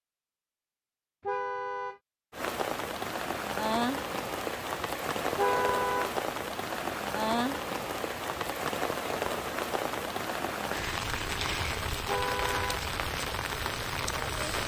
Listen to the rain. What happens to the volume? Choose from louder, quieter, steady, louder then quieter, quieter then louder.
steady.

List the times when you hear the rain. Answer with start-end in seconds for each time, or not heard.
2.3-14.6.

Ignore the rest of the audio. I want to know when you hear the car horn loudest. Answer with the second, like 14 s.
6 s.